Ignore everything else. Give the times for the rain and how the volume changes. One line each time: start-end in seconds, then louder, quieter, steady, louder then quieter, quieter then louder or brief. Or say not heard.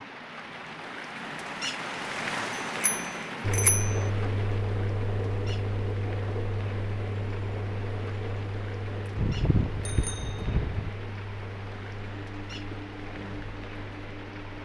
0.0-14.6 quieter.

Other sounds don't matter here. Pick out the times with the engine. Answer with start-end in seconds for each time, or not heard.
3.4-14.6.